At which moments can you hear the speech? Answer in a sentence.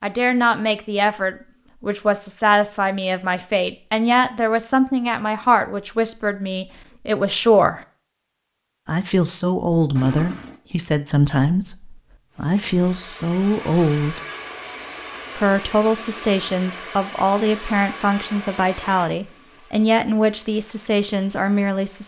You can hear the speech from 0.0 to 7.8 s, from 8.8 to 14.2 s and from 15.3 to 22.0 s.